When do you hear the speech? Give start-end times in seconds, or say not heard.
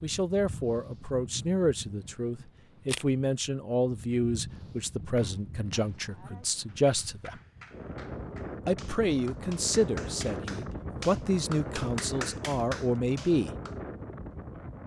0.0-7.3, 8.7-13.5.